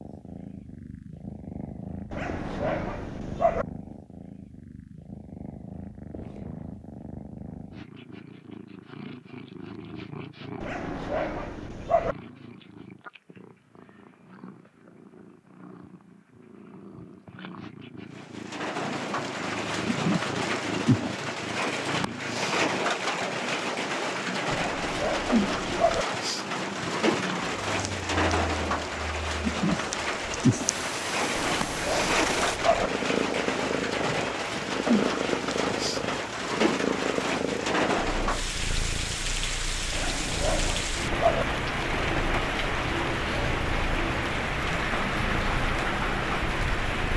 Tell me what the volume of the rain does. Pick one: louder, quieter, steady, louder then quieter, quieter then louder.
steady.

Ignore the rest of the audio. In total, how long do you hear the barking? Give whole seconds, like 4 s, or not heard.
8 s.